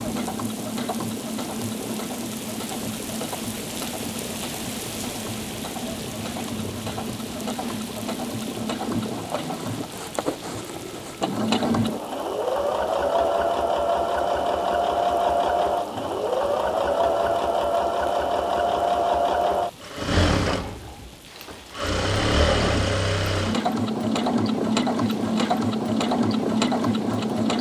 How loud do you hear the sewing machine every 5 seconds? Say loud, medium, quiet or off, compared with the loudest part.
medium, medium, loud, loud, loud, loud.